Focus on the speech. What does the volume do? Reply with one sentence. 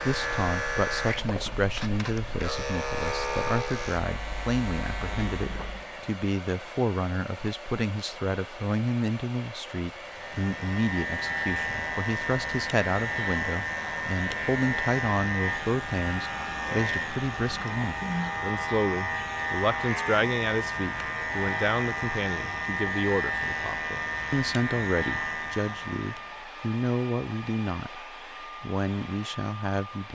The loudness of the speech stays about the same.